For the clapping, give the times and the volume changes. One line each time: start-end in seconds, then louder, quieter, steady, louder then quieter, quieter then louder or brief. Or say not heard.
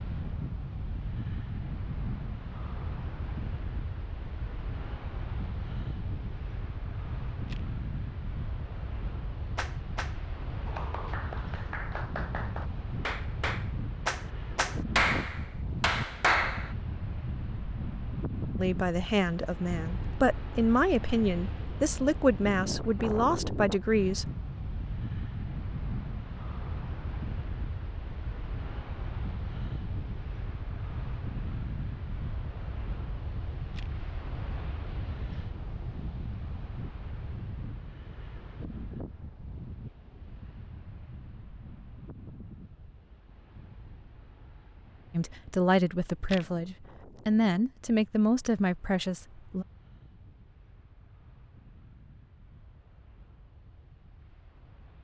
9.6-16.8 louder.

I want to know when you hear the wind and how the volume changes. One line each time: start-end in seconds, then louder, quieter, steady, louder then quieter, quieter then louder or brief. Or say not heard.
0.0-54.9 quieter.